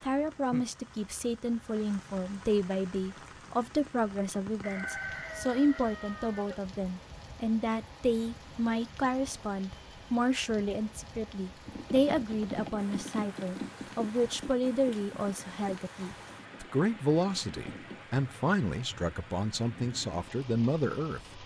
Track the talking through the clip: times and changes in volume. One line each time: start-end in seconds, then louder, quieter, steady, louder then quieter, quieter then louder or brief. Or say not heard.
0.0-21.4 steady.